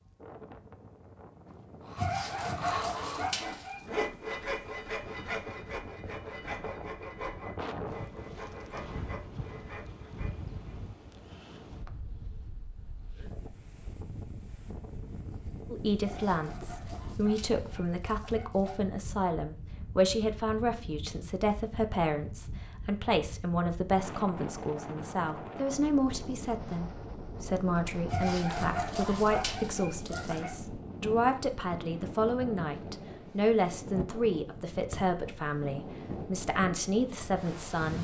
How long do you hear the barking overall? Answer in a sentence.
The barking can be heard for 7 seconds in total.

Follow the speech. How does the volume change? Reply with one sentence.
The loudness of the speech stays about the same.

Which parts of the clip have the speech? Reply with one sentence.
You can hear the speech from 15.7 to 37.9 s.